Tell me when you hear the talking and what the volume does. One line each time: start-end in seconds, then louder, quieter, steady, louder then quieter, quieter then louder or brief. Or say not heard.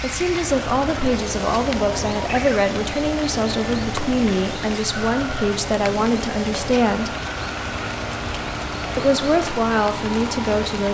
0.0-7.2 steady
8.9-10.9 brief.